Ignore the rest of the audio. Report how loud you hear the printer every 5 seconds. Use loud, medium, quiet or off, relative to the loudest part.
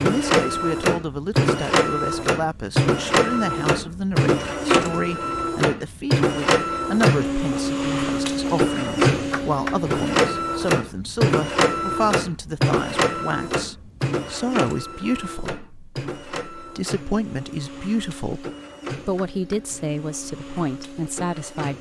loud, loud, loud, quiet, quiet.